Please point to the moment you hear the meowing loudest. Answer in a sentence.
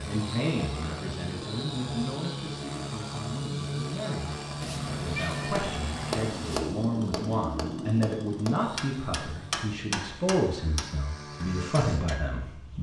The volume of the meowing peaks at 5 seconds.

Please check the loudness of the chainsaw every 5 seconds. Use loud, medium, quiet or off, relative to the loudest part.
loud, loud, medium.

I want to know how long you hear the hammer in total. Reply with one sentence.
The hammer can be heard for 7 seconds in total.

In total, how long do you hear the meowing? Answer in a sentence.
You can hear the meowing for 2 seconds altogether.